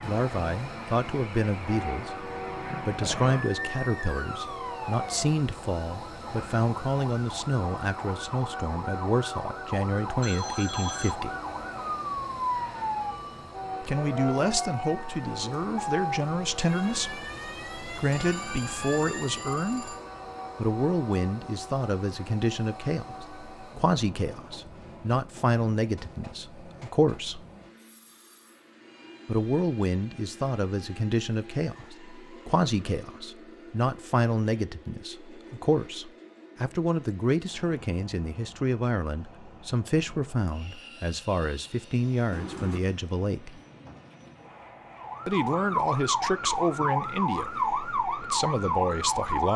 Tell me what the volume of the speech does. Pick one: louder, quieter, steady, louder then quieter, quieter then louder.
steady.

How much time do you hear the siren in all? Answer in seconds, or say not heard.
24 s.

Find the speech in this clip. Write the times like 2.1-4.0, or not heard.
0.0-11.3, 13.8-19.9, 20.6-27.4, 29.2-43.6, 45.2-49.5.